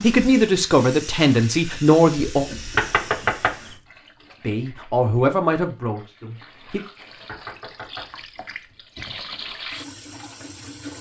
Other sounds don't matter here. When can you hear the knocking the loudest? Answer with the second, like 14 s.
3 s.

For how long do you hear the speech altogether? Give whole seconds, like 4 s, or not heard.
5 s.